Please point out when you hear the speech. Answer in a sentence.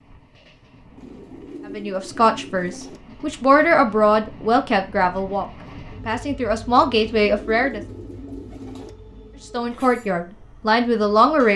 You can hear the speech from 1.8 to 7.8 s and from 9.5 to 11.5 s.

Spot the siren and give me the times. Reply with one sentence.
The siren can't be heard in this clip.